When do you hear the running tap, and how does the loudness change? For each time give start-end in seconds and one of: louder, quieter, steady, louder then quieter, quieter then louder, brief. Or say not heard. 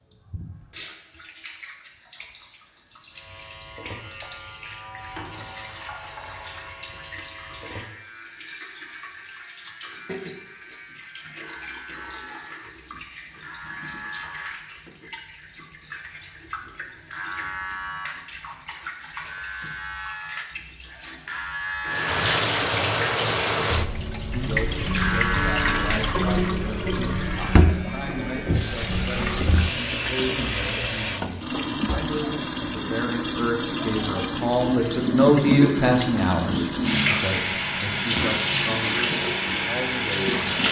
0.0-40.6 louder.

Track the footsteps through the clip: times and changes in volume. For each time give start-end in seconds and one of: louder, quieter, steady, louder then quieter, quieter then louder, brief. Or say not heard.
not heard.